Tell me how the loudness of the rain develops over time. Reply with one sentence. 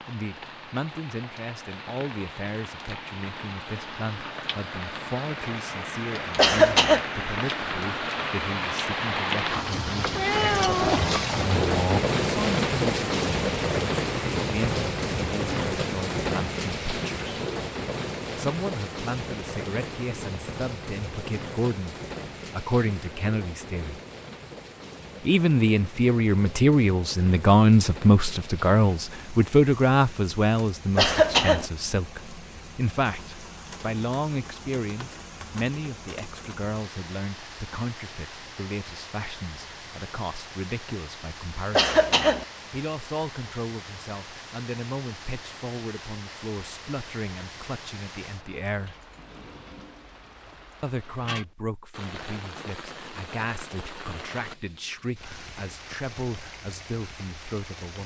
The loudness of the rain goes down.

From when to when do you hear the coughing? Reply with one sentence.
You can hear the coughing from 6.3 to 7.0 s, from 30.9 to 31.7 s and from 41.7 to 42.5 s.